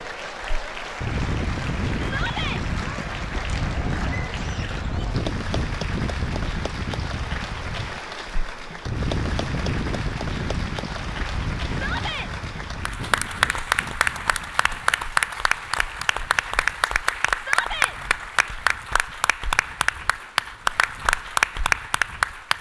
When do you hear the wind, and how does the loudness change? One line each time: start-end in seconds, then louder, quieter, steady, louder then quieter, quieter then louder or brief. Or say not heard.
0.0-22.5 quieter.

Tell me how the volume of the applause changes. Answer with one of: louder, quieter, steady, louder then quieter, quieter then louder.
louder.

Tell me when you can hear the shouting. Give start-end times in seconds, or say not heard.
2.0-2.6, 11.7-12.3, 17.4-17.9.